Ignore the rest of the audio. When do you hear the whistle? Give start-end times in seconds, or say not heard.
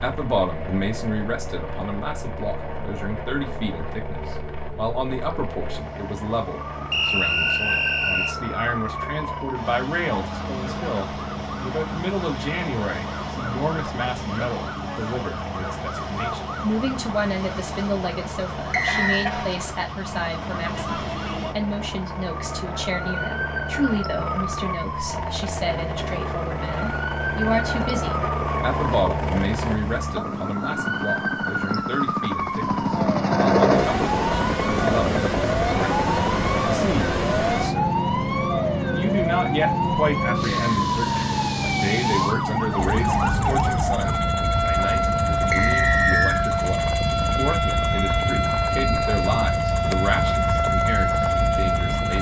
6.9-8.3, 18.7-19.3, 45.5-46.5.